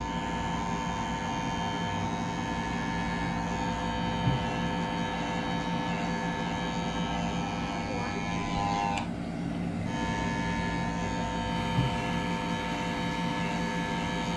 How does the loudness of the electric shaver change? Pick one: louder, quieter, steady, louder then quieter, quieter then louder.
steady.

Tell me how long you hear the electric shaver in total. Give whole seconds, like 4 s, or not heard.
14 s.